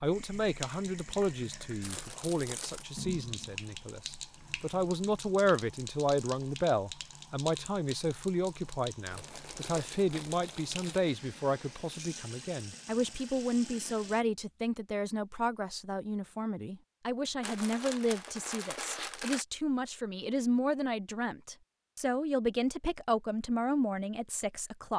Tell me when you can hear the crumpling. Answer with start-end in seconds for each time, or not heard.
1.8-2.9, 9.1-11.1, 17.4-19.4.